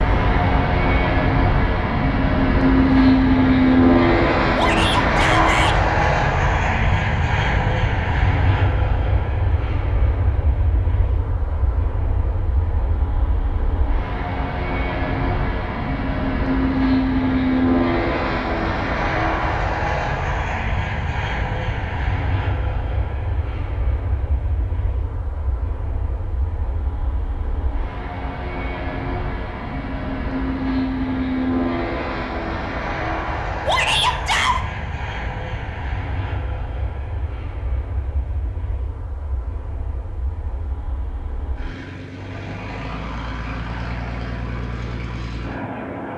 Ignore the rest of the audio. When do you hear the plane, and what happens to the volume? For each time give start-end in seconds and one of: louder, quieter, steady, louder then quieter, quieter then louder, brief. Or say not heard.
0.0-46.1 quieter.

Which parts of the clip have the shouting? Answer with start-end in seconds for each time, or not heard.
4.5-5.8, 33.6-34.6.